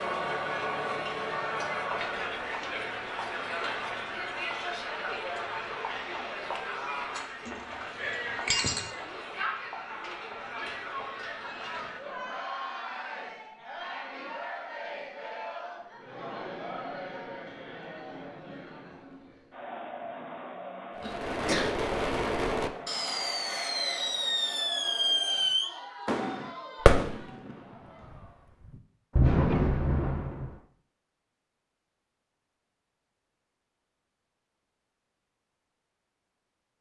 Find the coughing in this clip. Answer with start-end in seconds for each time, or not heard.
21.0-21.8.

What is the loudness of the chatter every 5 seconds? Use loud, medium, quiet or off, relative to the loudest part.
loud, loud, medium, medium, medium, quiet, off, off.